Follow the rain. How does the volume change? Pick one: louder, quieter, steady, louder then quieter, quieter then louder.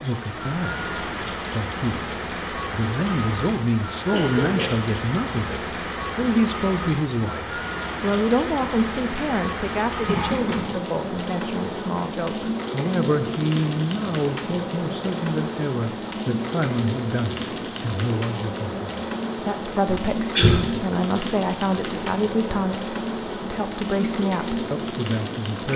steady.